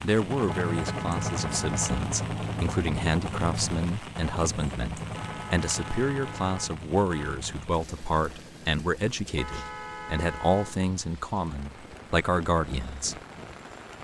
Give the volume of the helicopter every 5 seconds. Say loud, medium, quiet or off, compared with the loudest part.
loud, medium, quiet.